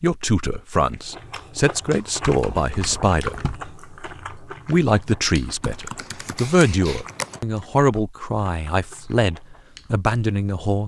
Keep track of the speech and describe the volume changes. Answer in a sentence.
The loudness of the speech stays about the same.